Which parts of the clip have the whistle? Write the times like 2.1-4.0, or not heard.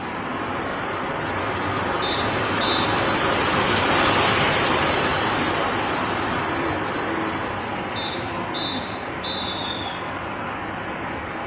2.0-2.9, 8.0-9.9.